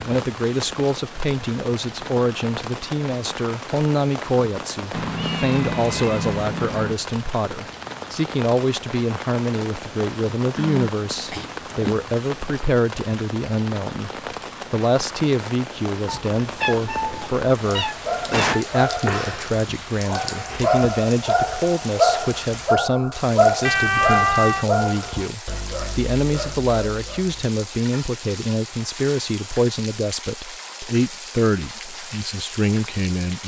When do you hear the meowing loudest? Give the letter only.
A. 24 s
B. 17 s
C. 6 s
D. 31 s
A.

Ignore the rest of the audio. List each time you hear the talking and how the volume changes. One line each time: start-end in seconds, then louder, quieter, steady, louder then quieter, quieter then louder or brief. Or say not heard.
0.1-14.1 steady
14.7-33.4 steady.